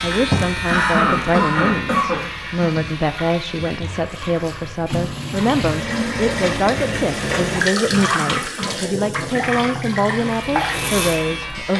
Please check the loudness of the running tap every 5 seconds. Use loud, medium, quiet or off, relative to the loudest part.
medium, loud, loud.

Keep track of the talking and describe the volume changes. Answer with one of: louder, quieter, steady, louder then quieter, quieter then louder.
steady.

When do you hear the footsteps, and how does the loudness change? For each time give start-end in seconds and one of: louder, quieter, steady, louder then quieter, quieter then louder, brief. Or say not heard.
not heard.